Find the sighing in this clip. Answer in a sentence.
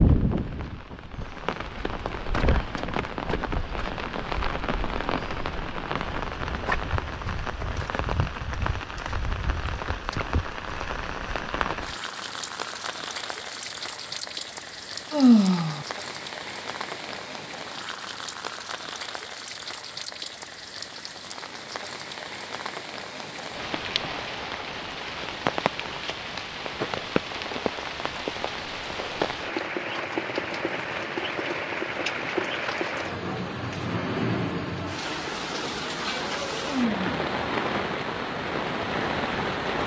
You can hear the sighing from 15.1 to 15.8 s and from 36.6 to 37.1 s.